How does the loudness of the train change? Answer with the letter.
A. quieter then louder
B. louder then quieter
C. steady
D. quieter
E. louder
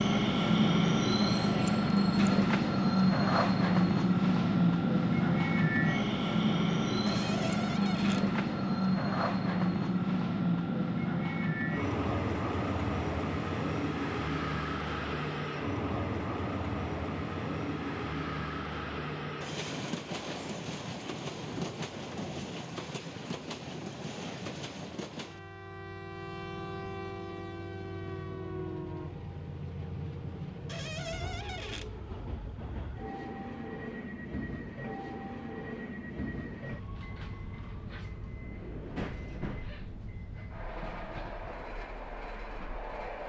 D.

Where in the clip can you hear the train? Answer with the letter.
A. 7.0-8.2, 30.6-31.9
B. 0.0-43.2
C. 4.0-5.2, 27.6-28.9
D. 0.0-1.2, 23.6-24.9
B.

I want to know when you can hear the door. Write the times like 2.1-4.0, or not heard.
7.0-8.2, 30.6-31.9.